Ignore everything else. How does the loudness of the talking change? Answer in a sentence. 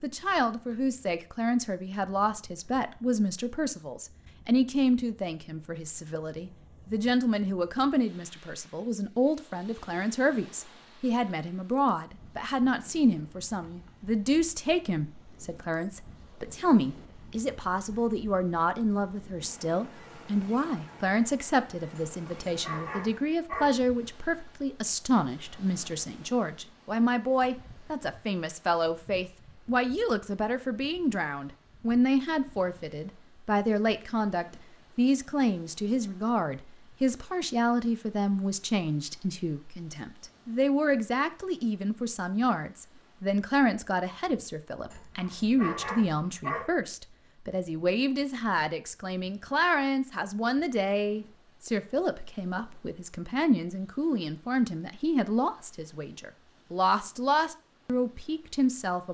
The loudness of the talking stays about the same.